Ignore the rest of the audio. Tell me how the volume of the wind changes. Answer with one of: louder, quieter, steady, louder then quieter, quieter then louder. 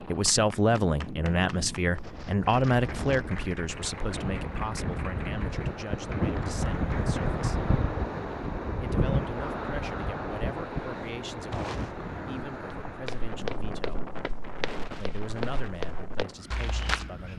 louder then quieter.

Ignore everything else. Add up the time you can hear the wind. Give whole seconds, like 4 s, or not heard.
17 s.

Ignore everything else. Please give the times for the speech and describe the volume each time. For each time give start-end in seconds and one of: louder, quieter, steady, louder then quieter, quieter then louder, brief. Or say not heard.
0.0-7.7 quieter
8.8-14.1 steady
14.9-17.3 brief.